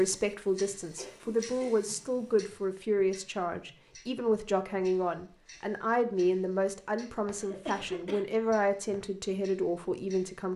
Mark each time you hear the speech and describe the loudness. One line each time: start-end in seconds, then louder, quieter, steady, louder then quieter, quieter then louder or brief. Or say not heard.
0.0-10.5 steady.